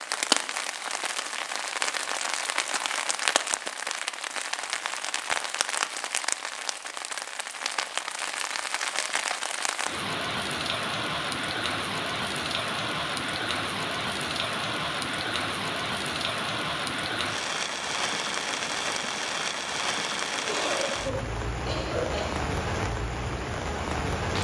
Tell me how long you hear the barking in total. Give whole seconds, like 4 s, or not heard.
not heard.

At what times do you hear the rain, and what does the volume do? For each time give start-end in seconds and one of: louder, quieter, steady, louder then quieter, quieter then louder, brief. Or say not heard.
0.0-24.3 steady.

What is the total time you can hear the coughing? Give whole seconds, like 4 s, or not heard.
2 s.